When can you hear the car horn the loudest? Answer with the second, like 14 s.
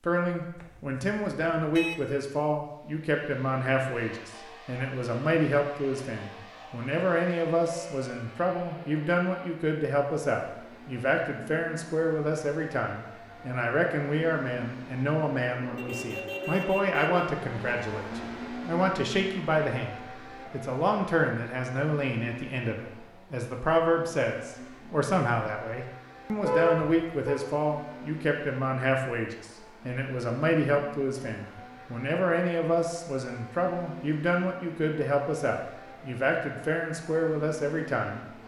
27 s.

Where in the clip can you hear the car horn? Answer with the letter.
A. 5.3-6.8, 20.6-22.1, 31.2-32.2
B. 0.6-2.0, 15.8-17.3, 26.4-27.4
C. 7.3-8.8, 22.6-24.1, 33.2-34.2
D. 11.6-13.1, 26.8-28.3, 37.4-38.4
B.